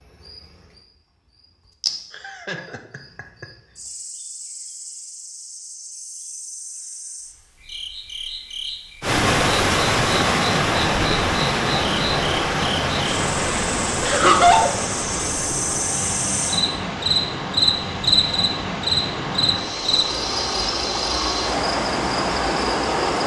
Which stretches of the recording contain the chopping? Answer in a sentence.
You can't hear the chopping here.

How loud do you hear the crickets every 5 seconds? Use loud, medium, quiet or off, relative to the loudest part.
quiet, quiet, medium, loud, medium.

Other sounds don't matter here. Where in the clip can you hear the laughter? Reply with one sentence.
You can hear the laughter from 2.1 to 3.5 s and from 14.0 to 14.8 s.